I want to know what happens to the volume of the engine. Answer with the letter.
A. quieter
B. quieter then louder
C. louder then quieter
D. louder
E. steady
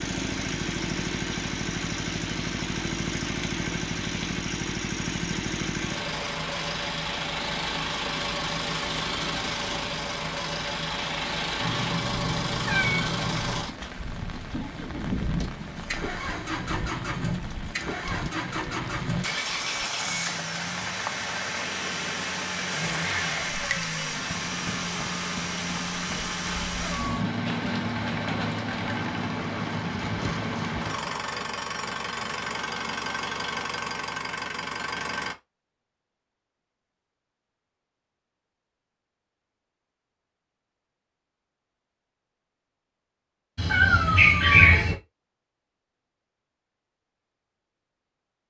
E.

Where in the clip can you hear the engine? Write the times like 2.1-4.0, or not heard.
0.0-35.4.